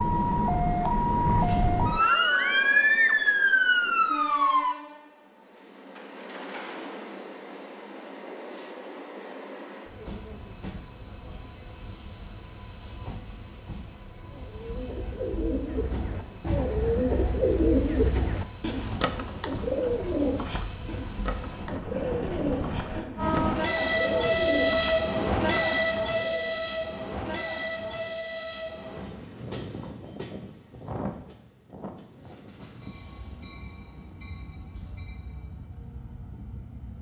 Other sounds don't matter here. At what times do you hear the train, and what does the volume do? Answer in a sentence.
The train can be heard from 0.0 to 36.9 s, getting louder then quieter.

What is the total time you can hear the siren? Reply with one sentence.
You can hear the siren for 5 seconds altogether.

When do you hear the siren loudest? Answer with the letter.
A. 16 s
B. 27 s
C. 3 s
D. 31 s
C.